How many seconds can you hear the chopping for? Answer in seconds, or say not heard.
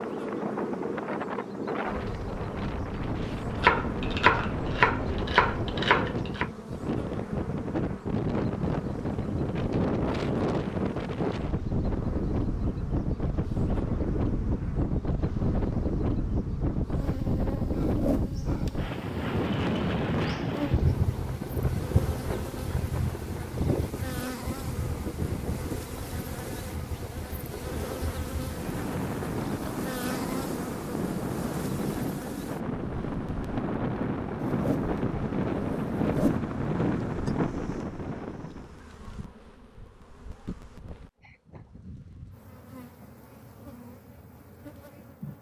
3 s.